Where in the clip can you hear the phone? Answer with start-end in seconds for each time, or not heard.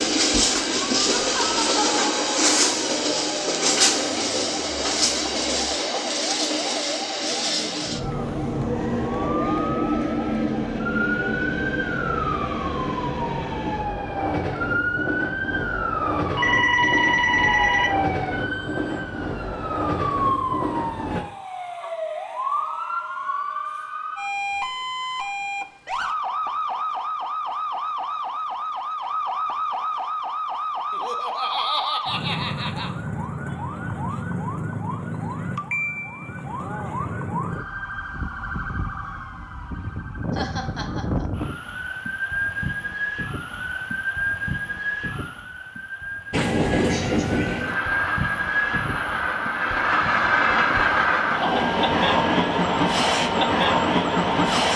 16.4-17.9.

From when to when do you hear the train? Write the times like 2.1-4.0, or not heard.
0.0-21.2, 46.3-54.7.